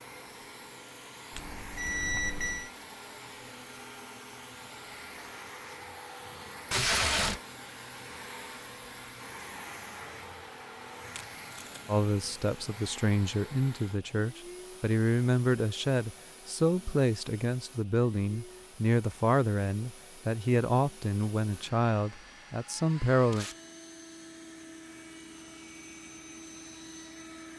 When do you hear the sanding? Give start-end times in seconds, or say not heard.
not heard.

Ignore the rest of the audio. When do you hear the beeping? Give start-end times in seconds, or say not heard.
1.3-2.7.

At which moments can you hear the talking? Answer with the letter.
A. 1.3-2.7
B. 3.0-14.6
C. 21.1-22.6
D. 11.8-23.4
D.